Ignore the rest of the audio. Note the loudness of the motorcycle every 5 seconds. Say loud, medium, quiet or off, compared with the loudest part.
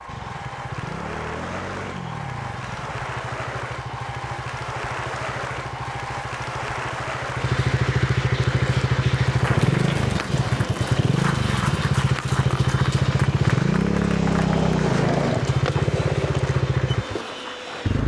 quiet, loud, loud, loud.